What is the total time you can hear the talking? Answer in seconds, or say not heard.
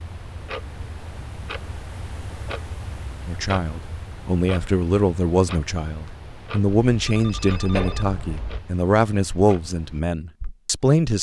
8 s.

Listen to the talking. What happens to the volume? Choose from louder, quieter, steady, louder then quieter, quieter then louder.
steady.